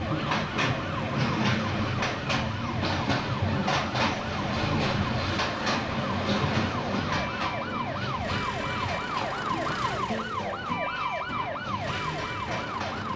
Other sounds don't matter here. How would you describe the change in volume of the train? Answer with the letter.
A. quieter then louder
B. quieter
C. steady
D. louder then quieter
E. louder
B.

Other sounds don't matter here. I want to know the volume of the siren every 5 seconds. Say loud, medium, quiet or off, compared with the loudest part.
medium, loud, loud.